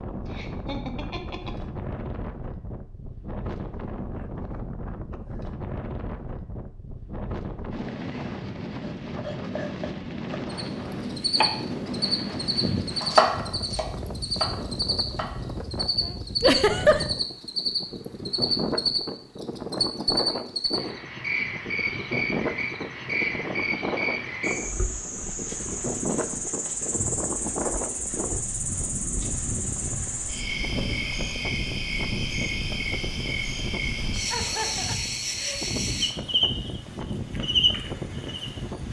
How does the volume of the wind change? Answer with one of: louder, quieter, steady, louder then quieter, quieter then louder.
steady.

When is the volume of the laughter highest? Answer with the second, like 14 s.
17 s.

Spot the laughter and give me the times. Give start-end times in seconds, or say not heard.
0.2-1.7, 16.4-17.1, 34.3-35.6.